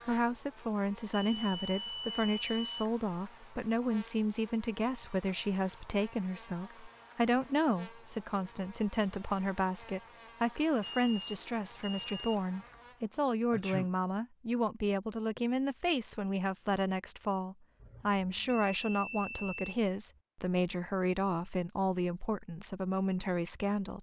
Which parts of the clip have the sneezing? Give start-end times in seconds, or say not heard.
13.5-13.9.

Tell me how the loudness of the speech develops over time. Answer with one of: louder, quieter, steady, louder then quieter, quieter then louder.
steady.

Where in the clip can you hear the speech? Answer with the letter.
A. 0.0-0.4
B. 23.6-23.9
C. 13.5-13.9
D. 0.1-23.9
D.